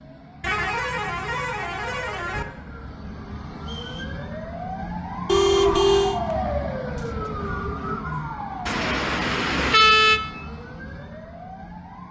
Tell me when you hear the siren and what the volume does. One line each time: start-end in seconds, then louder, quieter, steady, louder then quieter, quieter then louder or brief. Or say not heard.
0.0-12.0 louder then quieter.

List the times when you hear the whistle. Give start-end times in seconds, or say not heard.
3.6-4.2, 7.0-8.4.